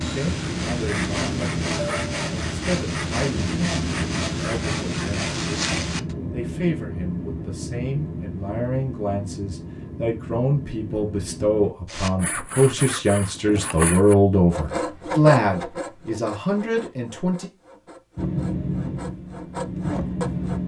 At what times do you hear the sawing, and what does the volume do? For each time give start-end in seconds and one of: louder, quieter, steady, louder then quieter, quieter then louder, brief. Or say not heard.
0.0-6.2 steady
11.8-20.6 quieter then louder.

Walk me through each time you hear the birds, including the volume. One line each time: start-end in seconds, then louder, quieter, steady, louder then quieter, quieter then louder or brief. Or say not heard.
not heard.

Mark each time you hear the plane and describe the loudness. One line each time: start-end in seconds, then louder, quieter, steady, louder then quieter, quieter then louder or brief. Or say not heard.
0.0-11.8 quieter
18.1-20.6 brief.